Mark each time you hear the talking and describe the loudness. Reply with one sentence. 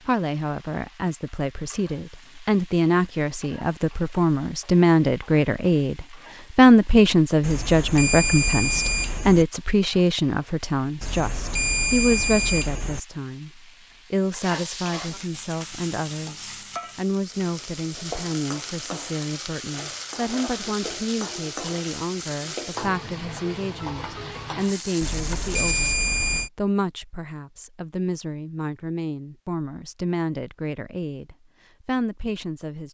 The talking can be heard from 0.1 to 32.8 s, getting quieter.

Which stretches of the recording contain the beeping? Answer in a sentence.
You can hear the beeping from 7.4 to 9.4 s, from 11.0 to 13.0 s and from 25.0 to 26.5 s.